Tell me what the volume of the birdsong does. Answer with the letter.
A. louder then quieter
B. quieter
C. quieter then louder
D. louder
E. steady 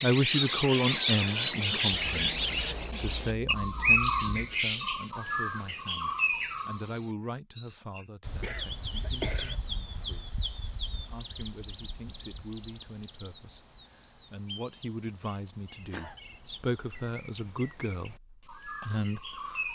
B.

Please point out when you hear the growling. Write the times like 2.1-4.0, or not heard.
not heard.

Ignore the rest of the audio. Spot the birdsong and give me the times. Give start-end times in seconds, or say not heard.
0.0-19.6.